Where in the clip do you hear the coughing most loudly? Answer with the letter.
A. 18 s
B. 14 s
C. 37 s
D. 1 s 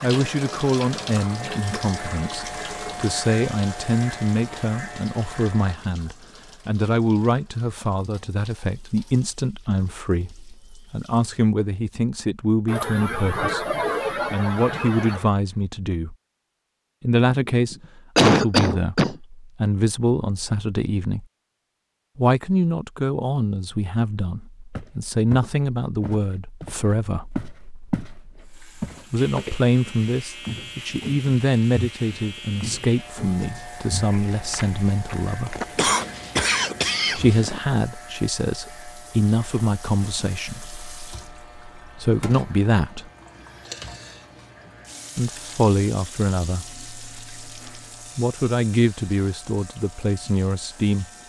A.